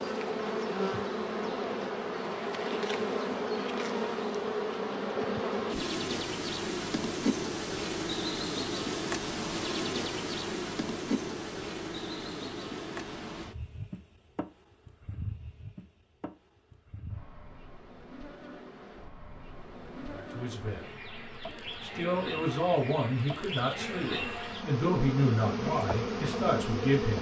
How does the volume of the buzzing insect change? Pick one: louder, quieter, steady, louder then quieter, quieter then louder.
quieter then louder.